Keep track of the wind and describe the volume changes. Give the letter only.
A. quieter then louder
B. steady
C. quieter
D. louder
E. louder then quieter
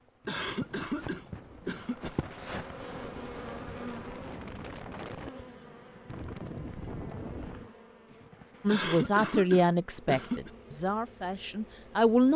D.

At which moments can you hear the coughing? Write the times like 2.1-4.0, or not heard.
0.2-2.1, 8.7-10.5.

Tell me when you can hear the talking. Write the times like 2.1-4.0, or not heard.
8.6-12.3.